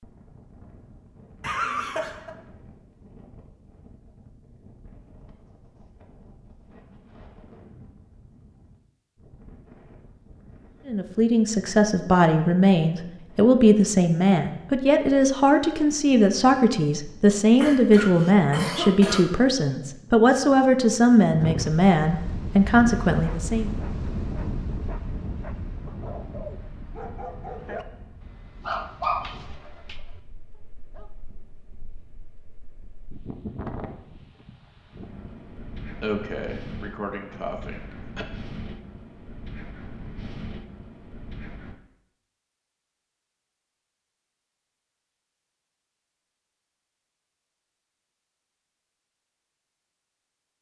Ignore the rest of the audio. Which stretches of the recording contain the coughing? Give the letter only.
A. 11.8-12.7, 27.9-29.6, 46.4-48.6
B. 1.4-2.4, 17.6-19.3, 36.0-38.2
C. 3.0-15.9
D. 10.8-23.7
B.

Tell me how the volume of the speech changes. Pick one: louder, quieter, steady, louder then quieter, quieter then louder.
steady.